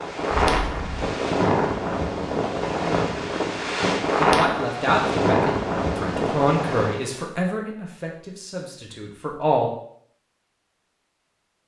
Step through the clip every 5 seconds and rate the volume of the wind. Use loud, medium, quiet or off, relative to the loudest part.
loud, loud, off.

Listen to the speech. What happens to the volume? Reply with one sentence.
The volume of the speech goes down.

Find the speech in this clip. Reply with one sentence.
You can hear the speech from 4.2 to 9.7 s.